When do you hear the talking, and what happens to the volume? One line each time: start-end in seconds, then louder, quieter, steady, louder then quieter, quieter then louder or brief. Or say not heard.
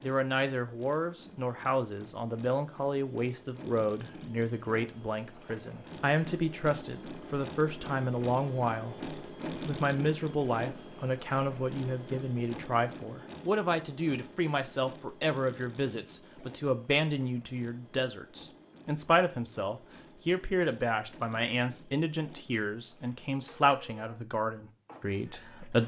0.0-25.8 steady.